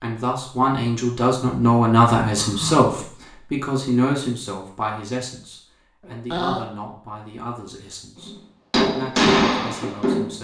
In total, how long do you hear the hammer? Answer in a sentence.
You can hear the hammer for 2 seconds altogether.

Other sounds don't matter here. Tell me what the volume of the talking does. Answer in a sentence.
The loudness of the talking goes down.